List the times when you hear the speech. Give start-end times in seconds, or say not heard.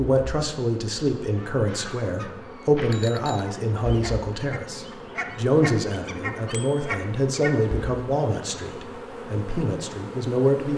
0.0-10.7.